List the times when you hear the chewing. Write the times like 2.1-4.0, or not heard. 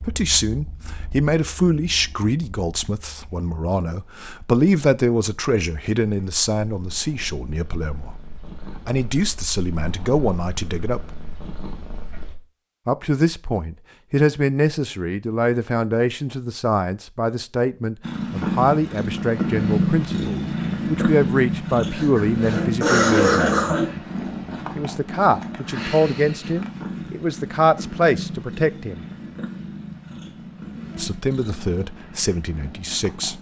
not heard.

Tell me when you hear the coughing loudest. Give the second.
23 s.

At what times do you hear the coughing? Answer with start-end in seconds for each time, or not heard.
21.9-23.9.